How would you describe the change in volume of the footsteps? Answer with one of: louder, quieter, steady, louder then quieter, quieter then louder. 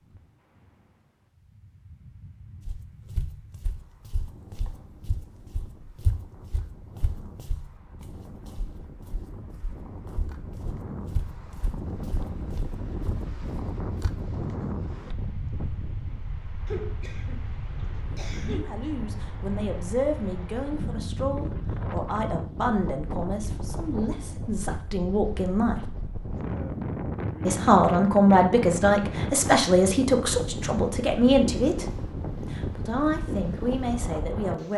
quieter then louder.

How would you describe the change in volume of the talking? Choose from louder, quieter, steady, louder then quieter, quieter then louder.
louder then quieter.